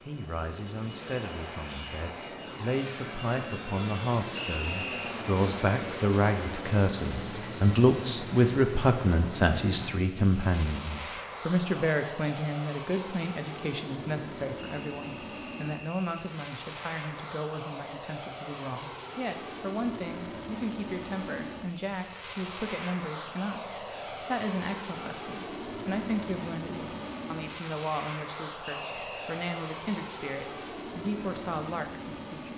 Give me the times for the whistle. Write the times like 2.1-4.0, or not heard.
4.3-5.2, 14.6-16.1, 28.6-29.2.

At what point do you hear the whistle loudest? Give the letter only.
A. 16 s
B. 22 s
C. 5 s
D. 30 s
C.